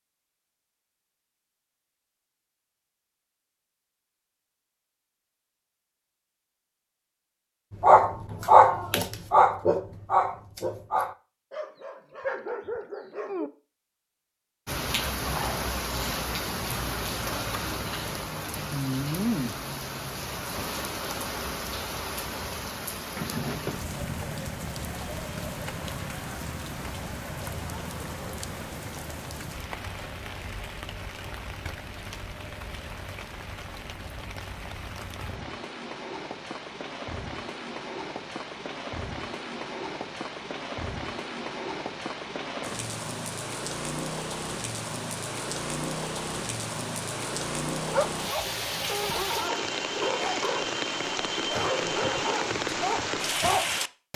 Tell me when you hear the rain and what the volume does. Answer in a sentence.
You can hear the rain from 14.7 to 54.1 s, getting quieter then louder.